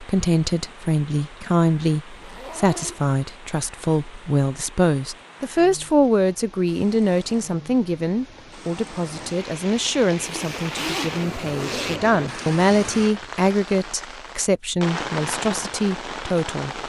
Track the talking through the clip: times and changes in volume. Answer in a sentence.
The talking can be heard from 0.0 to 16.8 s, at a steady volume.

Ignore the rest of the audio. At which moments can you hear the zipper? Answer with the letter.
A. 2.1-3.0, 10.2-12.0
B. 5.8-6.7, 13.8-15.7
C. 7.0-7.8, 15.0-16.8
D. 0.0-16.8
A.